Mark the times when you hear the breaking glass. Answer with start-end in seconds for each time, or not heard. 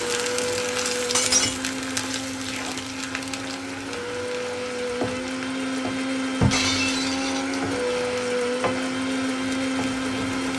1.1-1.6, 6.4-7.5.